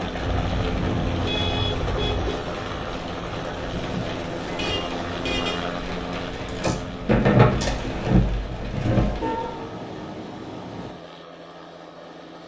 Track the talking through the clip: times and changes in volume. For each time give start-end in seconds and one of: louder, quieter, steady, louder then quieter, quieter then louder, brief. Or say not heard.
not heard.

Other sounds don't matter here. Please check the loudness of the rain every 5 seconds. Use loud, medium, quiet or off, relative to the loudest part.
medium, loud, off.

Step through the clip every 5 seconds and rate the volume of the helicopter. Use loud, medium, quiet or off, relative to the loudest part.
loud, loud, medium.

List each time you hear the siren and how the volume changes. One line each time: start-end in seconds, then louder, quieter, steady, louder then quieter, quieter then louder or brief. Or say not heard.
not heard.